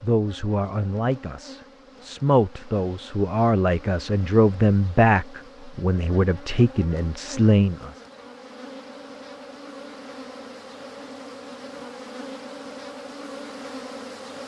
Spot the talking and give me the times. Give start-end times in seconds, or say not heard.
0.0-7.9.